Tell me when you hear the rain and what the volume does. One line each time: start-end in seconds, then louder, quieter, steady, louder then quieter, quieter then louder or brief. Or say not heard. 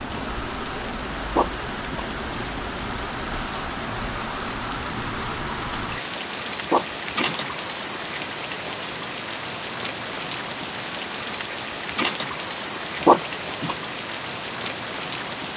0.0-15.5 steady.